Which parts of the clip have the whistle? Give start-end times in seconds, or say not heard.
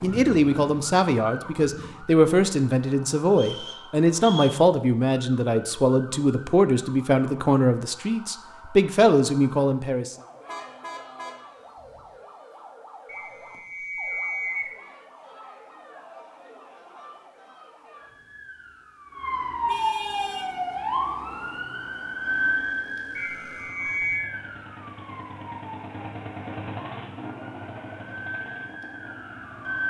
3.4-4.6, 13.1-14.8, 23.1-24.2.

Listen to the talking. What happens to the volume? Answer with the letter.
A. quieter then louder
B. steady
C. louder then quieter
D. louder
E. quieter
B.